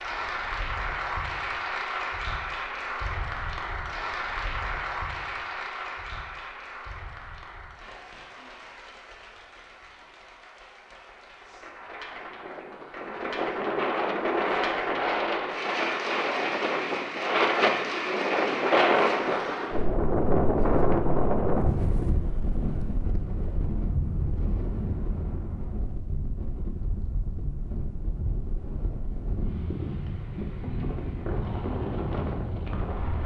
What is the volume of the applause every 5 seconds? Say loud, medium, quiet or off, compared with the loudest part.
loud, medium, medium, loud, off, off, off.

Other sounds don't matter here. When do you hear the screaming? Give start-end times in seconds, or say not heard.
not heard.